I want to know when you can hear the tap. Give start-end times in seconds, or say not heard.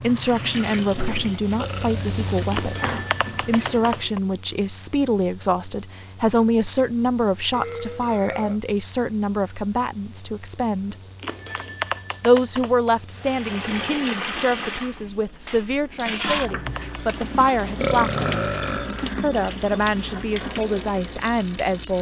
0.0-4.1, 13.2-21.9.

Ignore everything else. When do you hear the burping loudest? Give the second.
18 s.